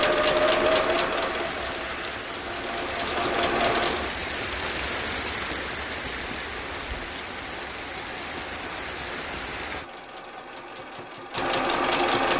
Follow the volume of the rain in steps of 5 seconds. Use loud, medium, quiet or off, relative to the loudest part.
loud, loud, off.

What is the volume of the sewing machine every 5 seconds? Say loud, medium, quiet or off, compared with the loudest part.
loud, quiet, loud.